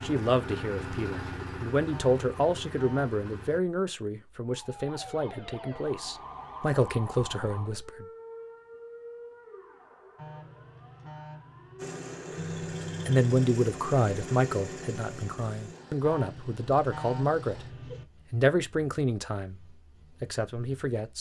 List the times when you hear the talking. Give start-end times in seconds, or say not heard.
0.0-8.1, 13.1-17.6, 18.3-21.1.